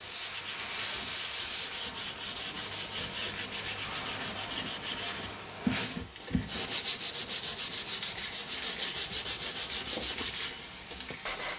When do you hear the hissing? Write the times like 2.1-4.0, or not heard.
0.0-11.5.